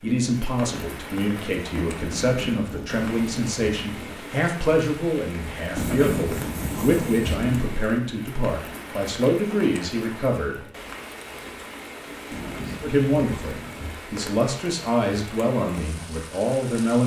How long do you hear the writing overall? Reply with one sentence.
The writing can be heard for 6 seconds in total.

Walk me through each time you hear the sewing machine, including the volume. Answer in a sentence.
You can't hear the sewing machine here.